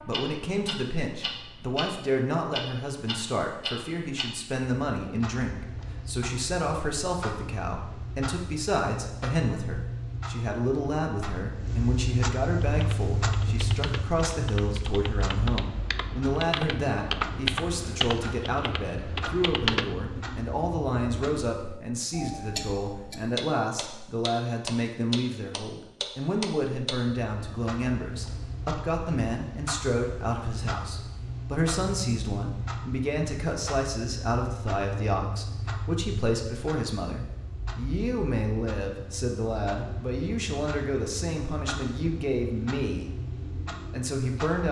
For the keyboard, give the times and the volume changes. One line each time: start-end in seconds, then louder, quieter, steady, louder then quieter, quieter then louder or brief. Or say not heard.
12.6-19.9 louder then quieter.